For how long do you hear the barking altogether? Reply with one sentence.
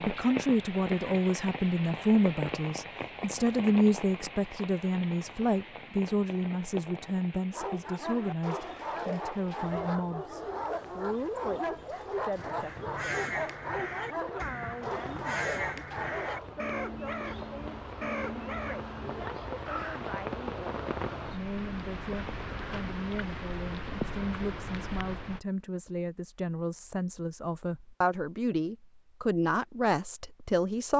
You can hear the barking for 9 seconds altogether.